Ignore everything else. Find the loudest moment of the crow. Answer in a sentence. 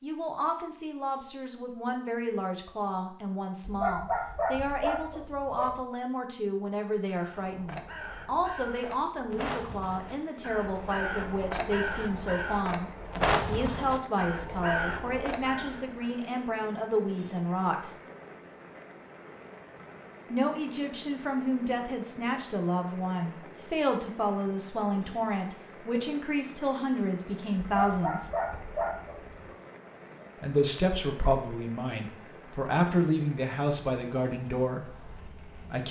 The volume of the crow peaks at 13 seconds.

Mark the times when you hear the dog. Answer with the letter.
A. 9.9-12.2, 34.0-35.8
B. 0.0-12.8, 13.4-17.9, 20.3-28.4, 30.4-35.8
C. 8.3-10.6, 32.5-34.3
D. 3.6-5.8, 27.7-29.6
D.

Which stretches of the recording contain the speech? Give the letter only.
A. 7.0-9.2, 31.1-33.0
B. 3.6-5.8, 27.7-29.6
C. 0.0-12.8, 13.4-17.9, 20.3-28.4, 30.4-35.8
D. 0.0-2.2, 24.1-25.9
C.